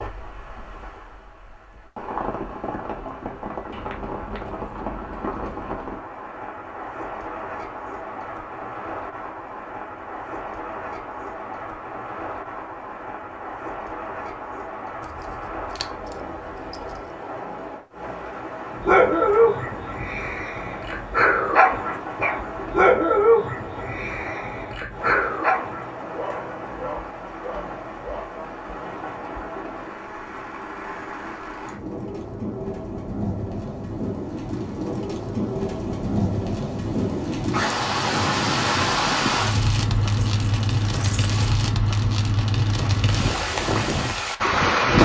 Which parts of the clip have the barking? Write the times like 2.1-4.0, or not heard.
18.8-28.3.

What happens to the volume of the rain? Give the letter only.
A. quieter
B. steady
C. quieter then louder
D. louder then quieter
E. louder
E.